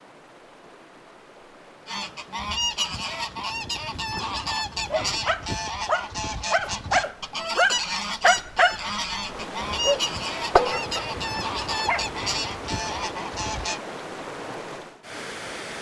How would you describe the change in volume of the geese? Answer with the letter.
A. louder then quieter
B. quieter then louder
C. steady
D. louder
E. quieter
C.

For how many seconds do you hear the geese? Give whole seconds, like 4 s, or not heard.
12 s.